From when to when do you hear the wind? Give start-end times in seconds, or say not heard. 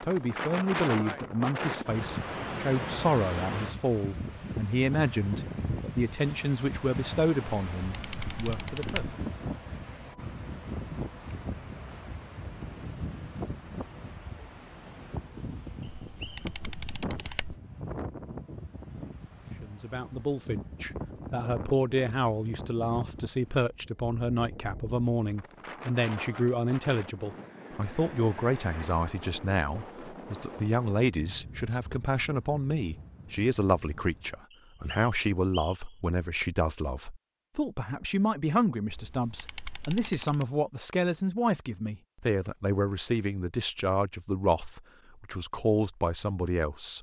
0.0-34.4.